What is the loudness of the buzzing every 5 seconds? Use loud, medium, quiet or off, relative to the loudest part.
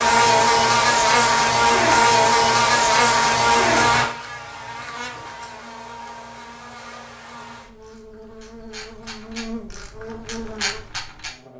loud, quiet, quiet.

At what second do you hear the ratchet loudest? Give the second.
11 s.